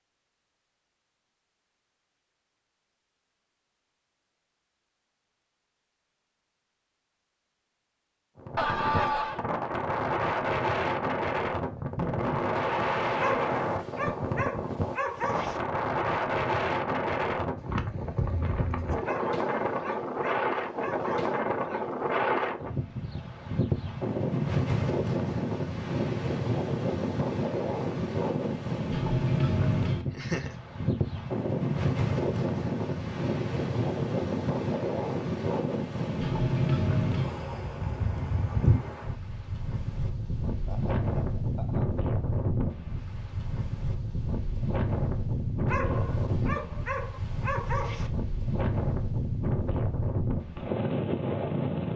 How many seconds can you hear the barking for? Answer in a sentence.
The barking can be heard for 7 seconds in total.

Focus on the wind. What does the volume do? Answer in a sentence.
The volume of the wind stays about the same.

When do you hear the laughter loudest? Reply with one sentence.
The volume of the laughter peaks at 9 seconds.